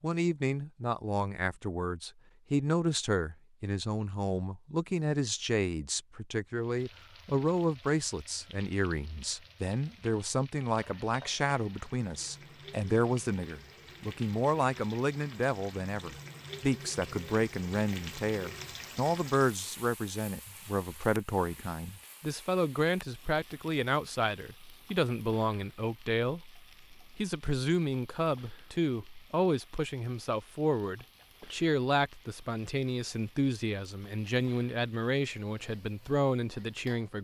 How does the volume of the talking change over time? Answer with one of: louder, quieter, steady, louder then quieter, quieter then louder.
steady.